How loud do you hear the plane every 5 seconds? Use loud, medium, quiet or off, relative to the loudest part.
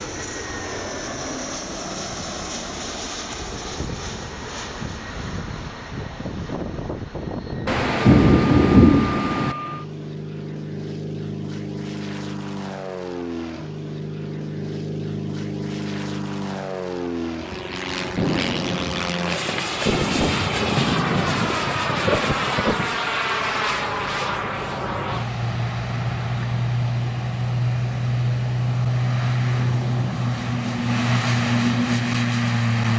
medium, medium, medium, medium, loud, loud, loud.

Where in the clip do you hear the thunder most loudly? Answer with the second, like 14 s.
9 s.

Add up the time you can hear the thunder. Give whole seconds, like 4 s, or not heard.
7 s.